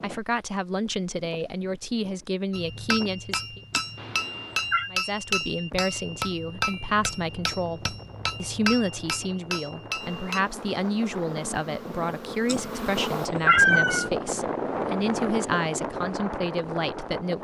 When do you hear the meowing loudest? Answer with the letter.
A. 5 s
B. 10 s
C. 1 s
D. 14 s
D.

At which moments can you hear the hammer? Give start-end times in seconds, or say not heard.
2.5-10.4.